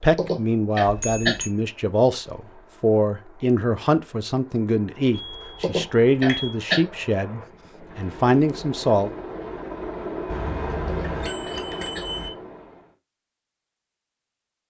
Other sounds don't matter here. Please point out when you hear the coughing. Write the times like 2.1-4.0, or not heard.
0.1-1.4, 5.6-6.8, 10.8-12.1.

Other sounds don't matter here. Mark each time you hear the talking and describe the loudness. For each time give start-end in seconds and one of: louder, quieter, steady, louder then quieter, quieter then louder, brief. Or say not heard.
0.0-9.1 steady.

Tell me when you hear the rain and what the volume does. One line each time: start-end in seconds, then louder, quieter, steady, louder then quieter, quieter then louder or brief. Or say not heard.
not heard.